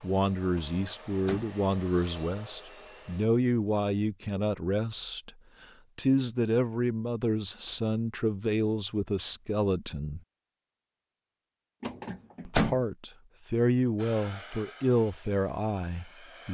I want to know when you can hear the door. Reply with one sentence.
The door can be heard from 0.6 to 1.5 s and from 11.8 to 12.8 s.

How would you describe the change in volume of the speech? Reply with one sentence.
The volume of the speech stays about the same.